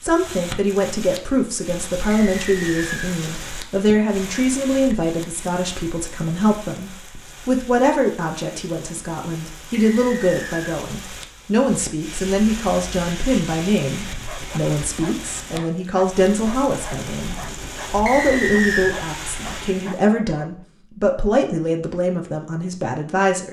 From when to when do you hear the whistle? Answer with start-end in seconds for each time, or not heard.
2.1-3.1, 9.8-10.8, 18.1-18.9.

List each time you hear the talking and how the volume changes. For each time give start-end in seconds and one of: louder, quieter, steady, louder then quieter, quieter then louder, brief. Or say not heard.
0.0-23.4 steady.